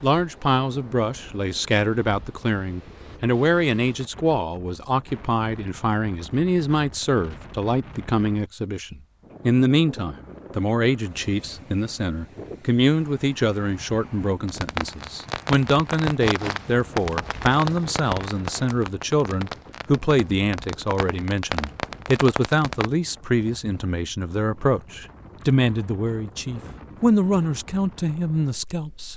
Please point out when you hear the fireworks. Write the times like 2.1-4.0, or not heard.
14.4-22.9.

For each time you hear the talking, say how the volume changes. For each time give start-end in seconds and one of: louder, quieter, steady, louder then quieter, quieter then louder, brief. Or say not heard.
0.0-29.1 steady.